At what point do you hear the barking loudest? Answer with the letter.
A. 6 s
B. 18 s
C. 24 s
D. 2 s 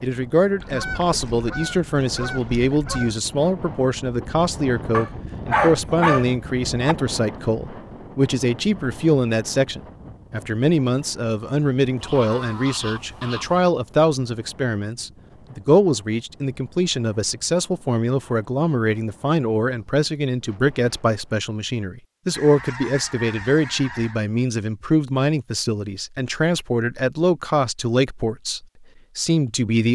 A.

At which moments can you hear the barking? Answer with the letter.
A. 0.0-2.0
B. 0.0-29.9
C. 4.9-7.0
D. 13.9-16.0
C.